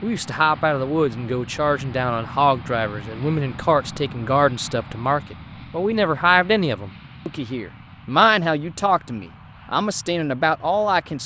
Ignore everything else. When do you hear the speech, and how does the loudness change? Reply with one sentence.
The speech can be heard from 0.0 to 11.2 s, at a steady volume.